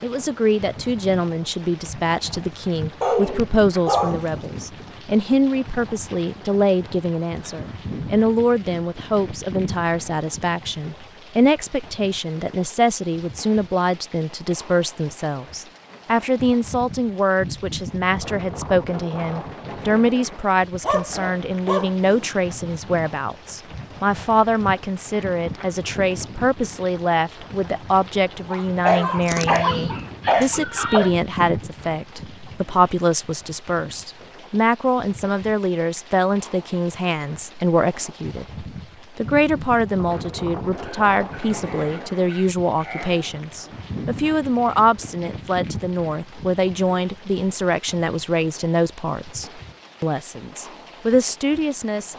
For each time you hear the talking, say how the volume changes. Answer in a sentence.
You can hear the talking from 0.0 to 52.1 s, at a steady volume.